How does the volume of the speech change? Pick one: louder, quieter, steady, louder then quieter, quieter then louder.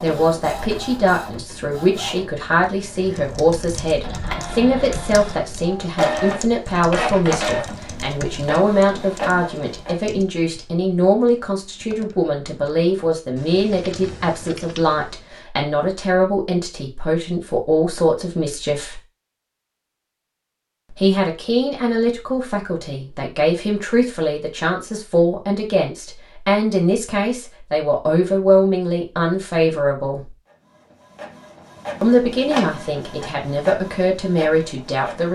steady.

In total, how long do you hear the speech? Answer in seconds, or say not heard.
32 s.